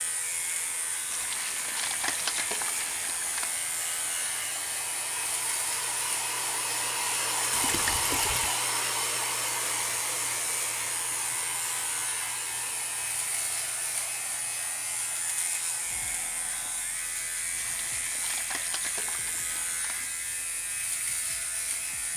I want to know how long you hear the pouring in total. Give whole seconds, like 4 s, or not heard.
6 s.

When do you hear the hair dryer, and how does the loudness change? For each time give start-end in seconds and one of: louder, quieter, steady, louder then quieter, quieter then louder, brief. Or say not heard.
0.0-22.1 louder then quieter.